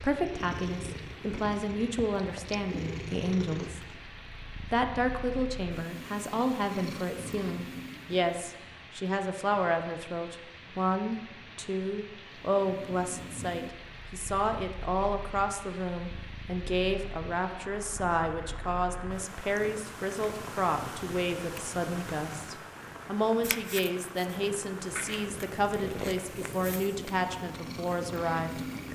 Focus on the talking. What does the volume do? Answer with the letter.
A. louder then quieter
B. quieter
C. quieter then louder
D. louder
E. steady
E.